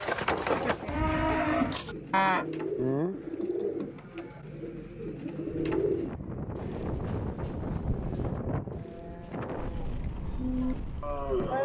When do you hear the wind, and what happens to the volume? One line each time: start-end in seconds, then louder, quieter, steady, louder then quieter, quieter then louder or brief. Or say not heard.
5.7-11.6 quieter.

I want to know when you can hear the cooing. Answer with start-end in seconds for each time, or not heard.
1.1-10.8.